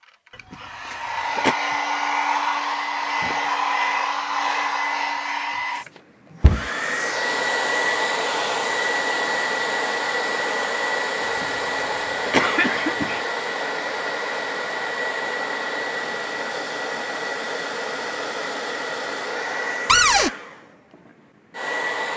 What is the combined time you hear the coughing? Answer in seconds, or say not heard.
3 s.